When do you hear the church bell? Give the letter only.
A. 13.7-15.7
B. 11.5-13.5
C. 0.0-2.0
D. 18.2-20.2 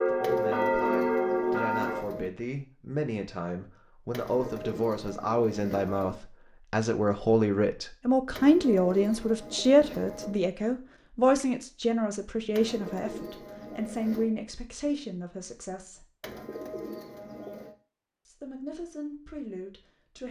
C.